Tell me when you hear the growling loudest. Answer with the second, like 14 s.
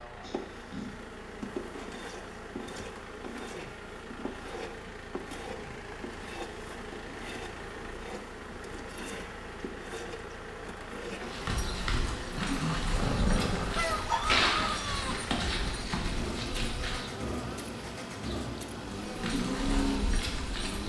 13 s.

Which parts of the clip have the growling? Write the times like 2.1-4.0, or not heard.
0.2-0.8, 12.3-14.0.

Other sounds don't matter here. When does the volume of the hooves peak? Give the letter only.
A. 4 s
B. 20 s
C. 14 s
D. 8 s
C.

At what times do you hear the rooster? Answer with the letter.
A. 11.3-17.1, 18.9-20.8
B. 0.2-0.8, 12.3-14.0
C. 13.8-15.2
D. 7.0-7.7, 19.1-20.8
C.